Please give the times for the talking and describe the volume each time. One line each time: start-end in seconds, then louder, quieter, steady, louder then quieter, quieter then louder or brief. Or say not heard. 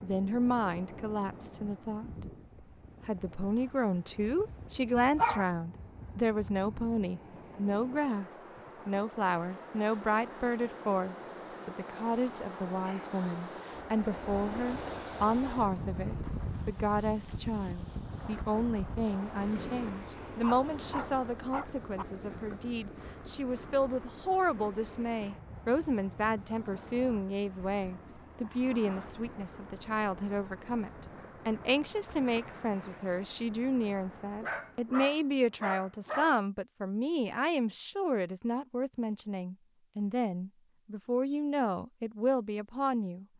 0.0-2.2 brief
3.0-43.2 steady.